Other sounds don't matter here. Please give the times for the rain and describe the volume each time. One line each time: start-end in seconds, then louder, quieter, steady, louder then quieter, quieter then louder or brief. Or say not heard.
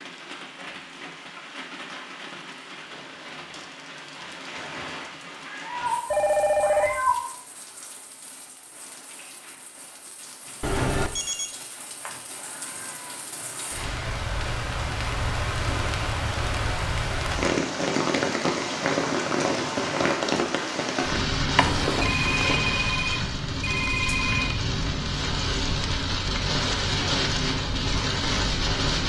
0.0-29.0 quieter then louder.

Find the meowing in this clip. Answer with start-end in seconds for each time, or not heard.
5.5-7.2, 12.1-13.2, 21.6-22.6.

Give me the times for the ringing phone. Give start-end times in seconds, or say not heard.
6.1-7.0, 10.6-11.6, 22.0-24.6.